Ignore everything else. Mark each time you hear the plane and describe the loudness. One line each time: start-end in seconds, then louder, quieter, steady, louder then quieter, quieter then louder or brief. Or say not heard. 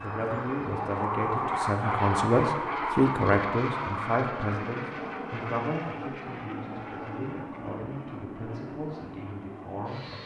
0.0-10.2 quieter.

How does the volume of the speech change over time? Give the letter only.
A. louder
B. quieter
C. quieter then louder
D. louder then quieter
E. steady
D.